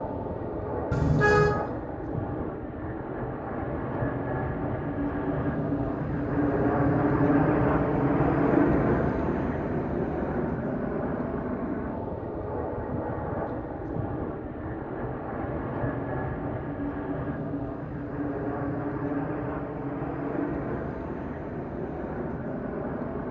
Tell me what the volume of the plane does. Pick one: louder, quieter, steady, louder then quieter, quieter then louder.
louder then quieter.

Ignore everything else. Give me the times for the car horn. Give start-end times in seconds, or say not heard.
0.9-1.6.